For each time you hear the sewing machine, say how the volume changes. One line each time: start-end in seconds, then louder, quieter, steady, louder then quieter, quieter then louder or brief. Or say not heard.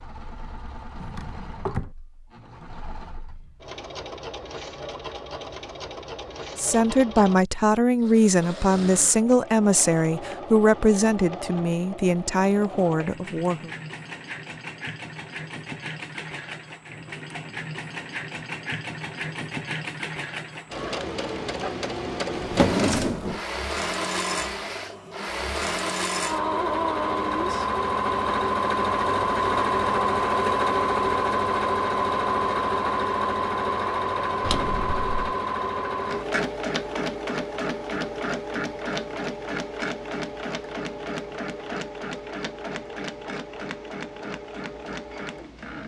0.0-45.8 louder then quieter.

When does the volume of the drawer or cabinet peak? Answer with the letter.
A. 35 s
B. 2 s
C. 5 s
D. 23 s
D.